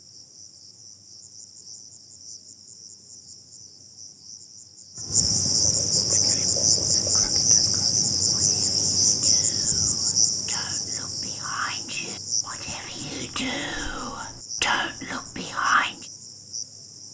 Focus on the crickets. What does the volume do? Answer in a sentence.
The volume of the crickets goes up, then down.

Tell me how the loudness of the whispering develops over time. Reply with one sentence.
The loudness of the whispering goes up.